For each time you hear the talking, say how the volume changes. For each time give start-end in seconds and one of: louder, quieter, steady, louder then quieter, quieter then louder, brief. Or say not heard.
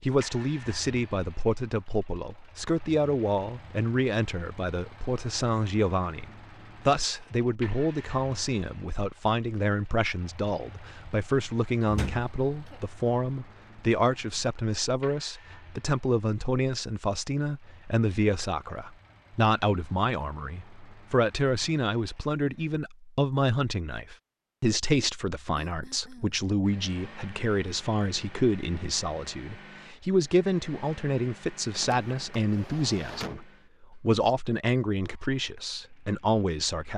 0.0-36.9 steady.